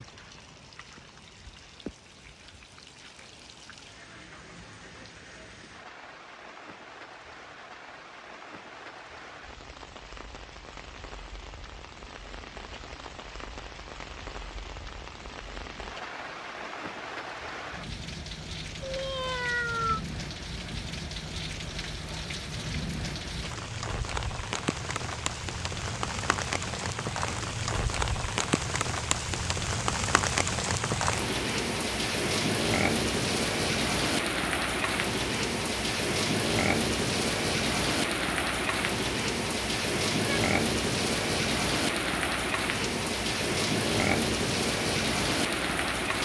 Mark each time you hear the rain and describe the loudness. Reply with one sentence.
You can hear the rain from 0.0 to 46.2 s, getting louder.